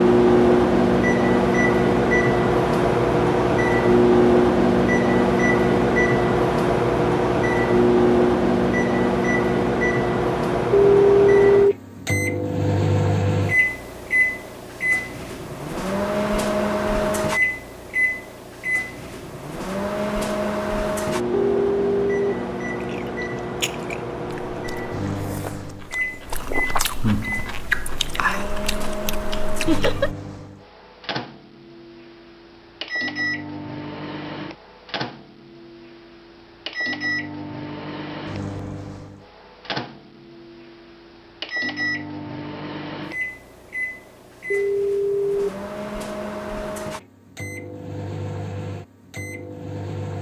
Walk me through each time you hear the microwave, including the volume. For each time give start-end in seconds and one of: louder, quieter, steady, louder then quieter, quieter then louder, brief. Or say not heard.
0.0-50.1 quieter.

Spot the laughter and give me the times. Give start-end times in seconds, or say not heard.
29.6-30.1.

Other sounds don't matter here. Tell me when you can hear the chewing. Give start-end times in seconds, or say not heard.
22.8-30.1.